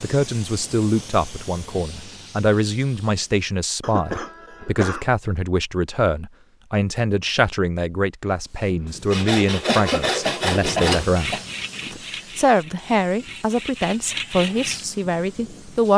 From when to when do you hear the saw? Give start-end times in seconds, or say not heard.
9.1-14.8.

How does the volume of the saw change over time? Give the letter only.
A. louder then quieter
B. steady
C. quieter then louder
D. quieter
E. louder
C.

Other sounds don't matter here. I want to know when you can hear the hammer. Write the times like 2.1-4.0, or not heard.
not heard.